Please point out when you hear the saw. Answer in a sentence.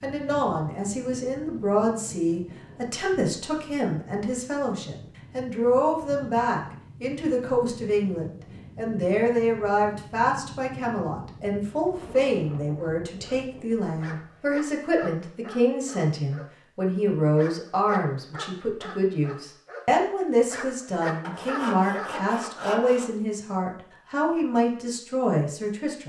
The saw can be heard from 21.2 to 23.1 s.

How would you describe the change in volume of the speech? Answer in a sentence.
The volume of the speech stays about the same.